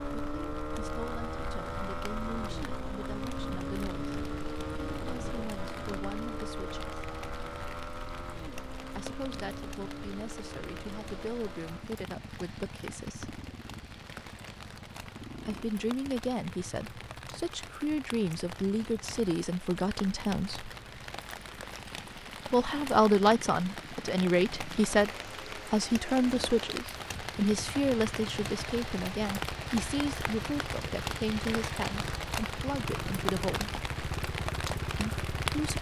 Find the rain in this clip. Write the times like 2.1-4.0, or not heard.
0.0-35.7.